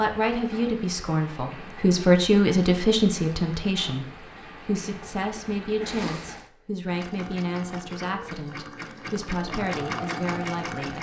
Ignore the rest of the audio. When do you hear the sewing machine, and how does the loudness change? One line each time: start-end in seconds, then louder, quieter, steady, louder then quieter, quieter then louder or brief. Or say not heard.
6.8-10.9 louder.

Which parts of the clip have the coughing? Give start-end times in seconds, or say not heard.
5.8-6.9.